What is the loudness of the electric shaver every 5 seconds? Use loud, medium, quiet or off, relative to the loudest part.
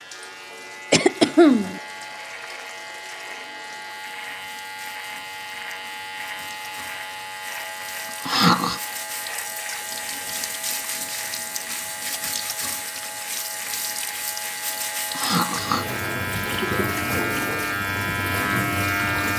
medium, medium, medium, loud.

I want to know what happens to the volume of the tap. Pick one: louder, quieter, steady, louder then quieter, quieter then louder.
louder.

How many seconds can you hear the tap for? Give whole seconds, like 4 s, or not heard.
19 s.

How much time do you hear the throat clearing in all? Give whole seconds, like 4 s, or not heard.
2 s.